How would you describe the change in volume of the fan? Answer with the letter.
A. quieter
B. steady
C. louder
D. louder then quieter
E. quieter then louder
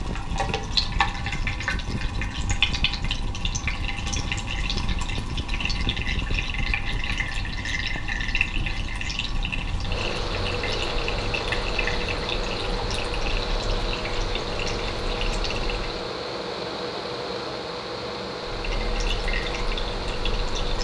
C.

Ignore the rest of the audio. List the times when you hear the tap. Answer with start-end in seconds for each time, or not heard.
0.0-16.0, 18.4-20.7.